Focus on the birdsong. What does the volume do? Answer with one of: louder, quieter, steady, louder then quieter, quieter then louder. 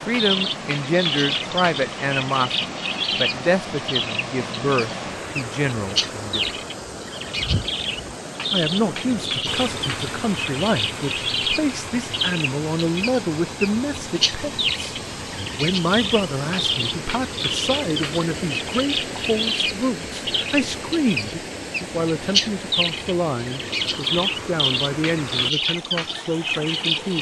steady.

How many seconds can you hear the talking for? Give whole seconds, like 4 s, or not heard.
25 s.